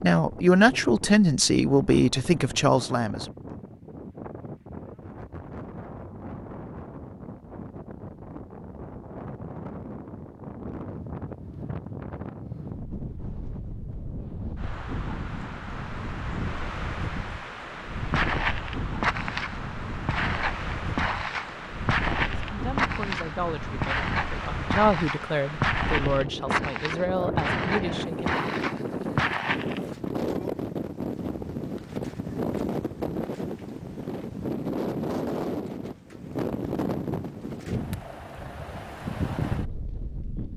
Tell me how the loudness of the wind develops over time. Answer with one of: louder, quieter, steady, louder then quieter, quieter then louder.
louder.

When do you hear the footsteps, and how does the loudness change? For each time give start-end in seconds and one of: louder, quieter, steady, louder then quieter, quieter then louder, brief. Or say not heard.
18.1-30.1 steady.